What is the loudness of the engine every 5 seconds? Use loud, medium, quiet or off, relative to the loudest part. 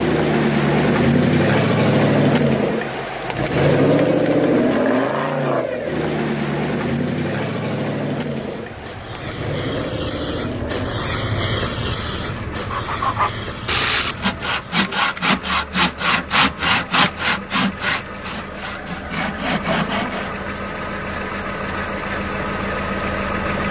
loud, medium, quiet, quiet, medium.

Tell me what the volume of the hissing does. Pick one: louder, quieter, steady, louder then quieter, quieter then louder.
louder then quieter.